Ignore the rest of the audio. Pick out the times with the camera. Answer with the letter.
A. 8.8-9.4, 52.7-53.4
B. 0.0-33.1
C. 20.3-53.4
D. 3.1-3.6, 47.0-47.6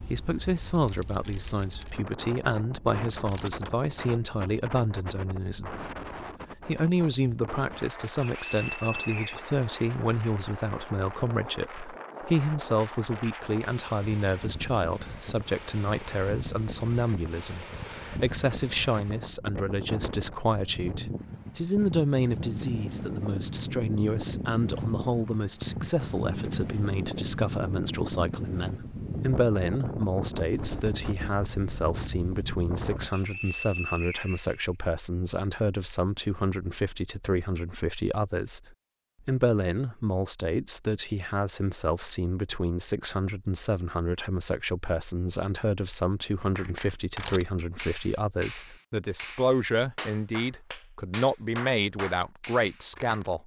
D.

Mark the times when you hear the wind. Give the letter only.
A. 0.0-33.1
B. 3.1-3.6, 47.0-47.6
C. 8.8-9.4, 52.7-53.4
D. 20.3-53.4
A.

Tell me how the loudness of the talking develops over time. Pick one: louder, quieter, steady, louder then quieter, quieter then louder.
steady.